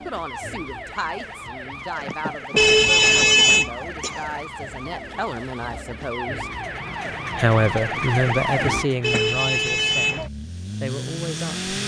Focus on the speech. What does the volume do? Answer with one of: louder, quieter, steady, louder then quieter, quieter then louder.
louder then quieter.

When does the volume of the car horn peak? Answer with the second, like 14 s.
3 s.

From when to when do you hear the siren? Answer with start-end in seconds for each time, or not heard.
0.0-8.9.